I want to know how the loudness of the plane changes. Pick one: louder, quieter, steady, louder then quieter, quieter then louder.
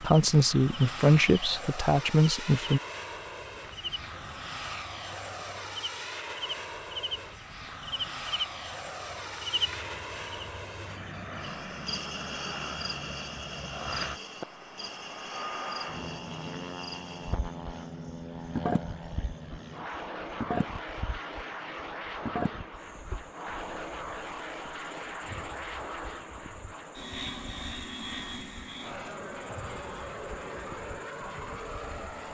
steady.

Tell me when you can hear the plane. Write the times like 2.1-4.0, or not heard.
0.0-32.2.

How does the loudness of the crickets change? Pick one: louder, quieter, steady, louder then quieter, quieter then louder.
quieter.